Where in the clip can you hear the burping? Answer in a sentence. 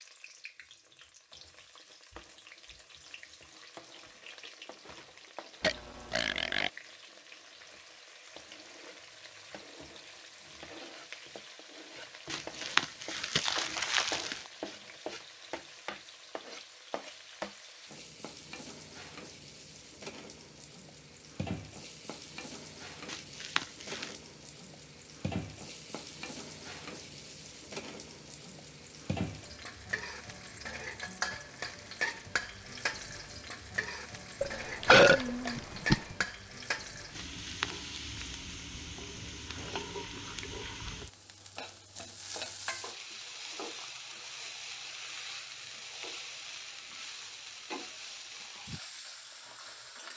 You can hear the burping from 5.6 to 6.7 s and from 34.4 to 36.2 s.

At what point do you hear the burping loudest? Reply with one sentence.
The loudest moment of the burping is at 35 seconds.